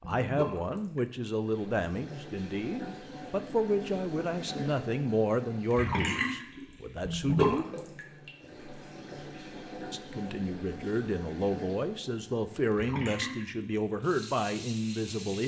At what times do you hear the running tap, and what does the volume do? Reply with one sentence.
The running tap can be heard from 0.0 to 15.4 s, getting louder then quieter.